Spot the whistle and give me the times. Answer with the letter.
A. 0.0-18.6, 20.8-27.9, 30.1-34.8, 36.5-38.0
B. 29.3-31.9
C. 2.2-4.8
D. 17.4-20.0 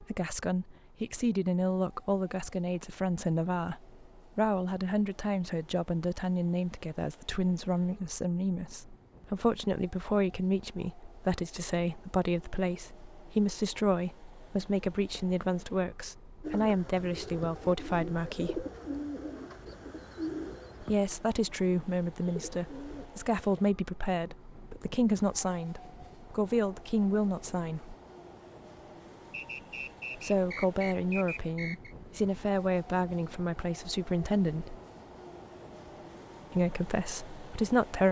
B.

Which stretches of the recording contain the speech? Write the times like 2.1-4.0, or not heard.
0.0-18.6, 20.8-27.9, 30.1-34.8, 36.5-38.0.